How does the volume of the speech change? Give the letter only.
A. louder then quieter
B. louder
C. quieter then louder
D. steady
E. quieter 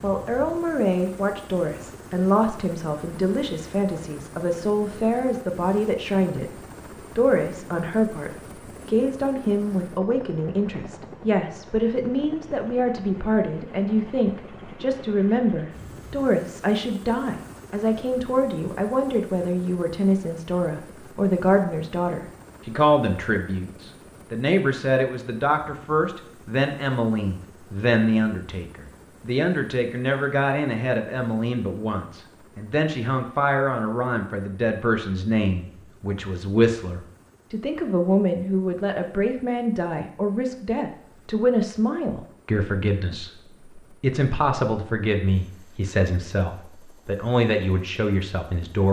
D.